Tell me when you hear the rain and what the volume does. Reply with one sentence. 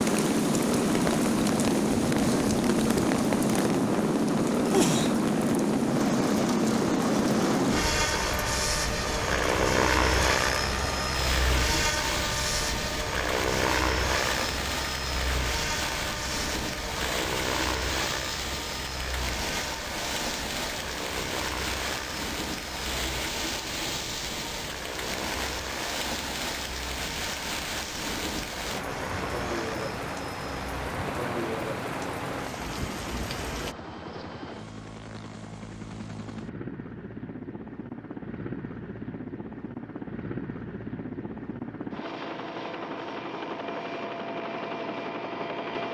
The rain can be heard from 0.0 to 33.8 s, at a steady volume.